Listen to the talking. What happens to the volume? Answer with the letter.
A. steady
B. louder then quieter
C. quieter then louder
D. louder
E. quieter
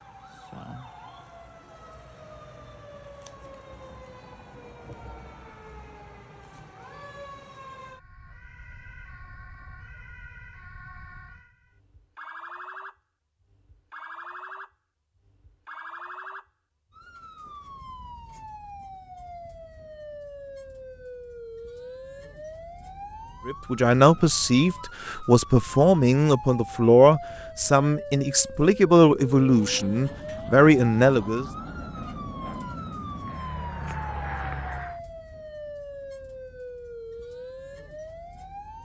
A.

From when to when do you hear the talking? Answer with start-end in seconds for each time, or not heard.
23.4-31.4.